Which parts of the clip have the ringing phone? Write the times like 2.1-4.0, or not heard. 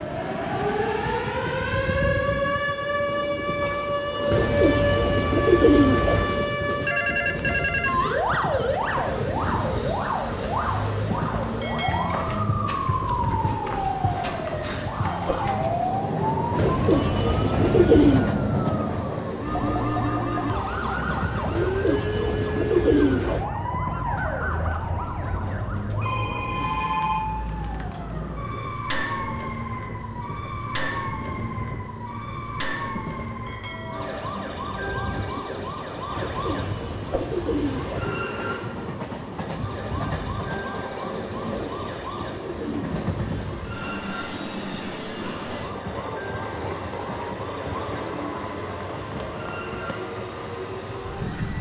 6.8-8.0, 26.0-28.1.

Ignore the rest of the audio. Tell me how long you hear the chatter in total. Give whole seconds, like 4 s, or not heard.
not heard.